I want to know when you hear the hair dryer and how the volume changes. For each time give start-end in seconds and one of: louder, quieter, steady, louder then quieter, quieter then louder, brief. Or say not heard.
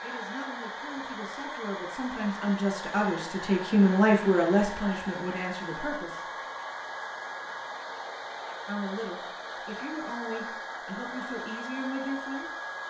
0.0-12.8 steady.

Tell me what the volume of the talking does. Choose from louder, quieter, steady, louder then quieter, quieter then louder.
louder then quieter.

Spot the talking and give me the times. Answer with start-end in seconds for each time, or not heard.
0.0-6.3, 8.7-12.5.